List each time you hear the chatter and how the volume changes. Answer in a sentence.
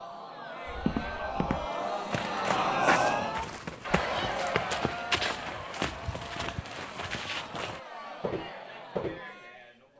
You can hear the chatter from 0.0 to 9.9 s, getting louder then quieter.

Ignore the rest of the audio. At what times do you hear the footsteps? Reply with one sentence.
The footsteps can be heard from 0.7 to 9.2 s.